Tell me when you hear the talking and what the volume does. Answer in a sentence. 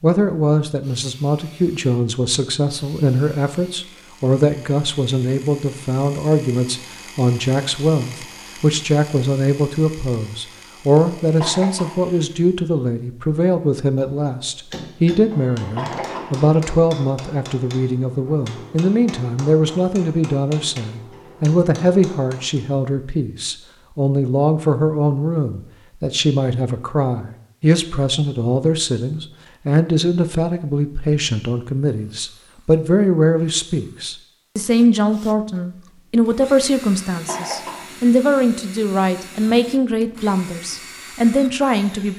The talking can be heard from 0.0 to 42.1 s, at a steady volume.